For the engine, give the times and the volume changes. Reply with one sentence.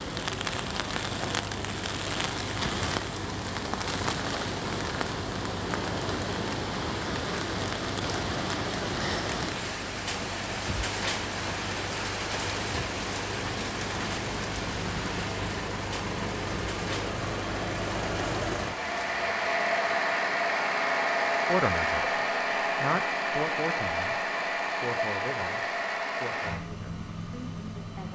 The engine can be heard from 0.0 to 28.0 s, getting louder.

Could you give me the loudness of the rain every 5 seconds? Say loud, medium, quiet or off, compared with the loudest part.
loud, loud, loud, medium, off, off.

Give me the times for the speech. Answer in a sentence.
The speech can be heard from 21.4 to 22.1 s and from 22.8 to 28.0 s.